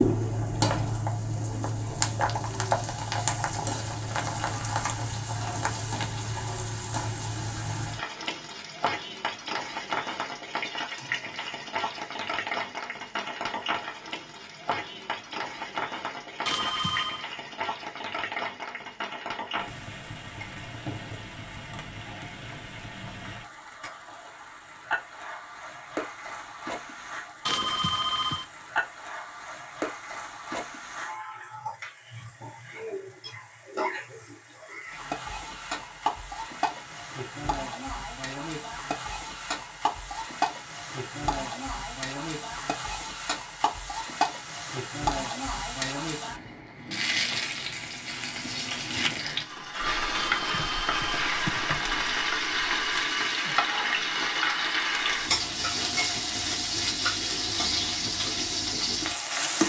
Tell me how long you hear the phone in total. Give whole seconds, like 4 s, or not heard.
3 s.